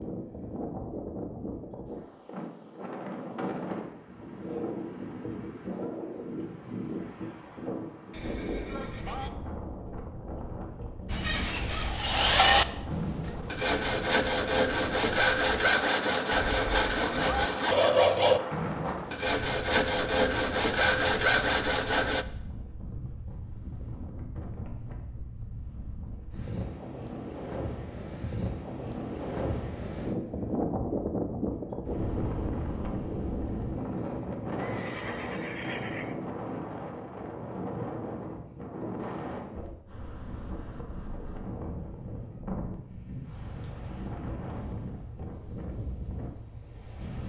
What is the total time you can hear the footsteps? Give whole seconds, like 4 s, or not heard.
not heard.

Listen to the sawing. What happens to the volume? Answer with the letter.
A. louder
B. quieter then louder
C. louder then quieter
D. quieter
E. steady
E.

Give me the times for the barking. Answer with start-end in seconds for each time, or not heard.
not heard.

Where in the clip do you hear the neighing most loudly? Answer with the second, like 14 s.
17 s.